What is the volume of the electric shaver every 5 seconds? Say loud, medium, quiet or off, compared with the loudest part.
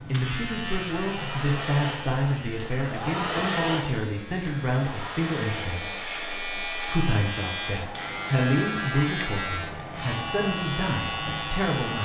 medium, loud, loud.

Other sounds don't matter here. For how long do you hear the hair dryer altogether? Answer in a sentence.
You can hear the hair dryer for 12 seconds altogether.